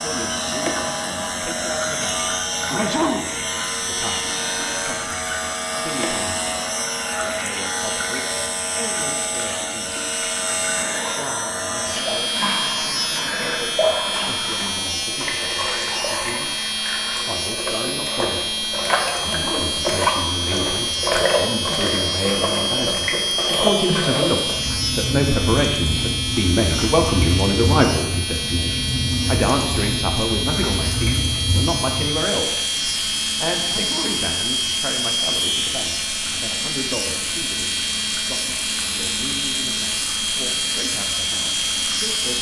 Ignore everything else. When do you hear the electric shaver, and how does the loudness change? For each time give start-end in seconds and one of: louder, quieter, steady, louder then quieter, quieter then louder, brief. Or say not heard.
0.0-42.3 steady.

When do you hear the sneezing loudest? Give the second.
3 s.